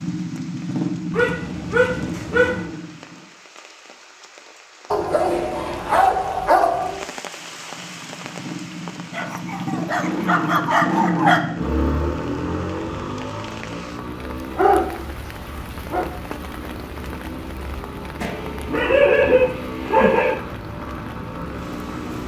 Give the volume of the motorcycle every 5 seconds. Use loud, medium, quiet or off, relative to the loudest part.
loud, medium, loud, medium, medium.